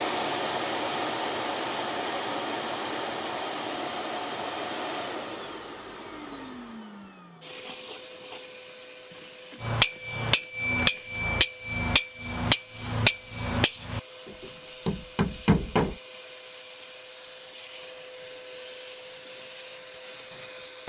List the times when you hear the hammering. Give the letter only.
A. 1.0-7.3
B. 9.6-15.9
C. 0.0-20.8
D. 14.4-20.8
B.